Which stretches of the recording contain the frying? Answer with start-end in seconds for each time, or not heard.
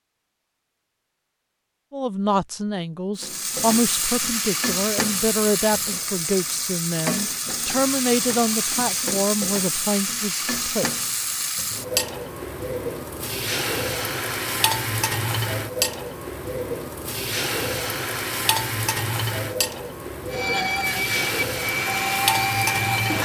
3.1-23.2.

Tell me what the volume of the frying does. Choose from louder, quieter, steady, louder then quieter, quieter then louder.
steady.